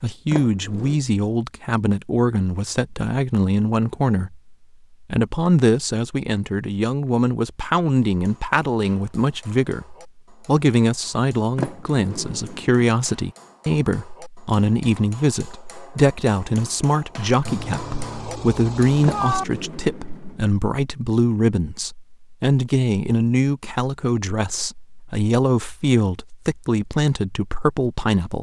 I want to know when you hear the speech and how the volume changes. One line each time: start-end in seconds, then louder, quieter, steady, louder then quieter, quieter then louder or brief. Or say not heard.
0.0-28.3 steady.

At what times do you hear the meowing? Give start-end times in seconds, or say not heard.
17.4-19.4.